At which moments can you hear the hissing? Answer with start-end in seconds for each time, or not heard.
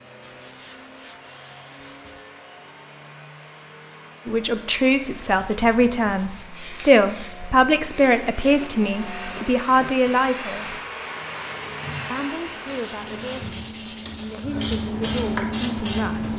6.3-16.3.